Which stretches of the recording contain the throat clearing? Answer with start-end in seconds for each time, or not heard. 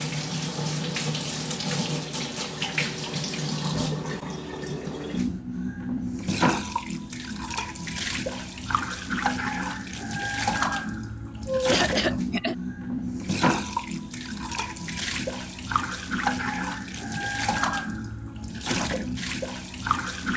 11.4-12.6.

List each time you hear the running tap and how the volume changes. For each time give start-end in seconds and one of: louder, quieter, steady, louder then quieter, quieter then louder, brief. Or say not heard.
0.0-20.3 steady.